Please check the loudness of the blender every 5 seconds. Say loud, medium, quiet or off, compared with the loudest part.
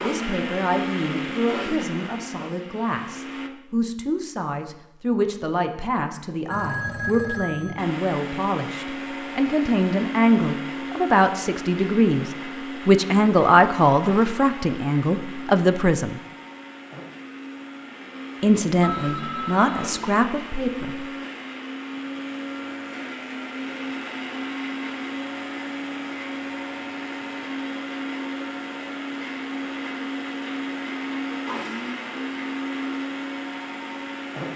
loud, loud, loud, medium, loud, loud, loud.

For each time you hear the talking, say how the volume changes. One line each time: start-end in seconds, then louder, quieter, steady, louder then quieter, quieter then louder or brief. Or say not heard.
0.0-16.2 louder
18.4-21.1 brief.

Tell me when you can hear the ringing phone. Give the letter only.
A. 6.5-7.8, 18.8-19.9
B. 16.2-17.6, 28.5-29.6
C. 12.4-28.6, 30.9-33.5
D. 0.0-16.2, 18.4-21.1
A.